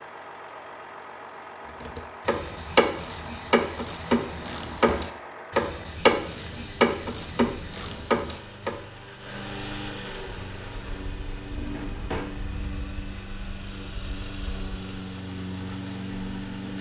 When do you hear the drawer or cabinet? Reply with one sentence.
You can hear the drawer or cabinet from 4.2 to 5.1 s and from 11.5 to 12.3 s.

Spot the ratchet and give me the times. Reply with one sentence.
You can hear the ratchet from 1.8 to 8.8 s.